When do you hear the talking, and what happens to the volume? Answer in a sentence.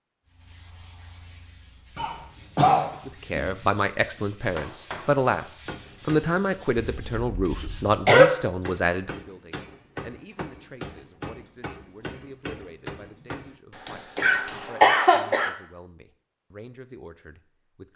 You can hear the talking from 3.0 to 17.9 s, getting quieter.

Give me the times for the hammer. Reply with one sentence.
The hammer can be heard from 4.5 to 6.3 s and from 8.6 to 14.8 s.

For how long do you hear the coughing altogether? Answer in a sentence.
The coughing can be heard for 4 seconds in total.